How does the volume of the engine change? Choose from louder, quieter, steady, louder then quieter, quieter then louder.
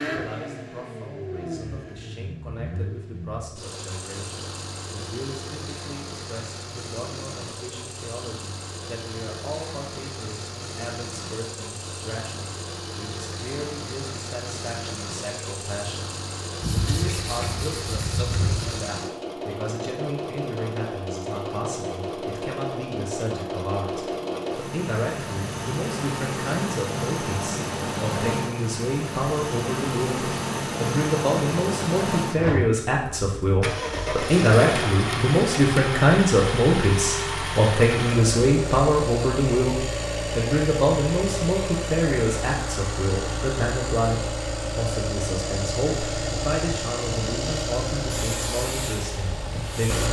louder.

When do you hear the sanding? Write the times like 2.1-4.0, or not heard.
16.6-18.8.